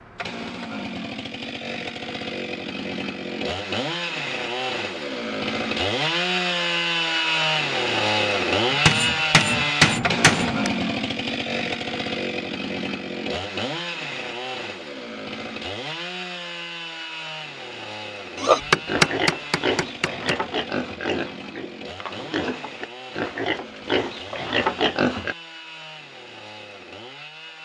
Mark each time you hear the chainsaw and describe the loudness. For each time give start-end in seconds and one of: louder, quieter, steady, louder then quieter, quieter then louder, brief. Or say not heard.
0.0-27.6 louder then quieter.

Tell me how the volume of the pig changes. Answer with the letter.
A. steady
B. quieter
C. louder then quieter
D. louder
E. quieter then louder
E.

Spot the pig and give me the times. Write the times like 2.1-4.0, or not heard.
18.4-25.4.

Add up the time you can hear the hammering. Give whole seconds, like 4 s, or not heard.
4 s.